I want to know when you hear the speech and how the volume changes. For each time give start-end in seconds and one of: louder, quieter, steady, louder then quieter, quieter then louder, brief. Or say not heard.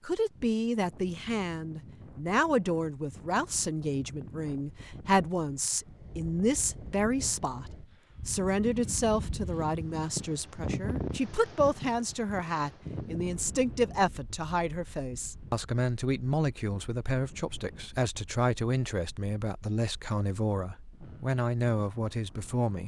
0.1-22.8 steady.